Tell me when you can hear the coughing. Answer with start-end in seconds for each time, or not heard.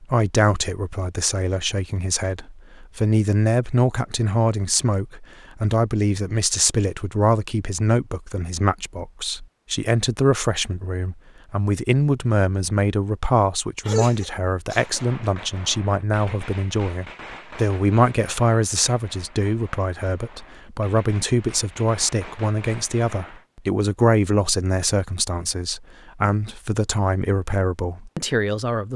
13.8-15.0.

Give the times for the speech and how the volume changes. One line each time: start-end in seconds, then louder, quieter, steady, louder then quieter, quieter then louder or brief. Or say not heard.
0.0-28.9 steady.